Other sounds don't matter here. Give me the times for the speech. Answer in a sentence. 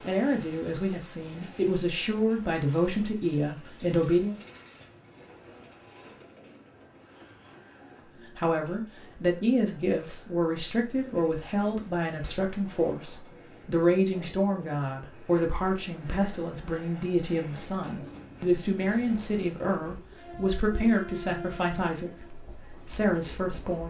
You can hear the speech from 0.0 to 4.4 s and from 8.3 to 23.8 s.